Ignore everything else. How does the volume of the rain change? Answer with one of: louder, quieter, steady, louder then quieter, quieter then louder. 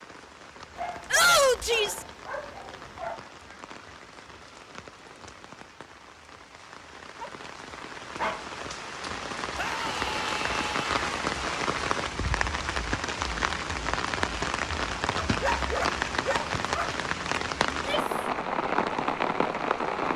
louder.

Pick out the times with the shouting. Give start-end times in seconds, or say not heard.
1.1-2.0, 9.6-11.1, 17.7-18.2.